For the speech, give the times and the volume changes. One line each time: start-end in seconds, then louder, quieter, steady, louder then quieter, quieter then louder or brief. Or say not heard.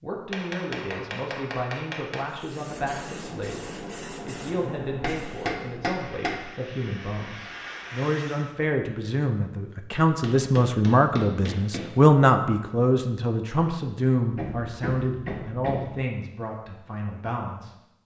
0.0-17.8 louder then quieter.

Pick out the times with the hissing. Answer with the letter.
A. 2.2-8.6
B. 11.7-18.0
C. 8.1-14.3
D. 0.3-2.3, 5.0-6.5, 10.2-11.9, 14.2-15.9
A.